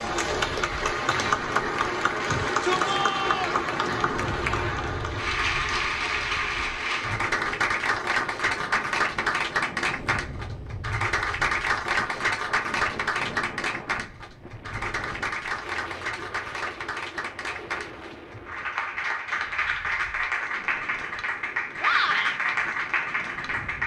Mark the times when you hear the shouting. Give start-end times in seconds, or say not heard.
2.2-3.6, 21.8-22.4.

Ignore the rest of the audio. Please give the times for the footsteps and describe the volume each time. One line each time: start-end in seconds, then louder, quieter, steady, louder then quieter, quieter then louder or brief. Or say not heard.
not heard.